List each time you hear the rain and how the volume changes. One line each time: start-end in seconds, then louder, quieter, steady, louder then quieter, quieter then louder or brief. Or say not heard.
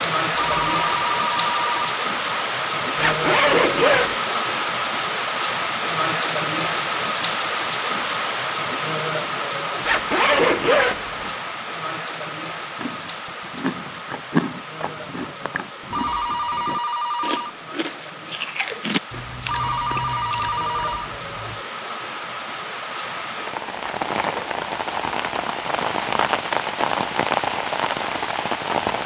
0.0-29.0 quieter then louder.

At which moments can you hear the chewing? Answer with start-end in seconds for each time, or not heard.
12.8-21.6.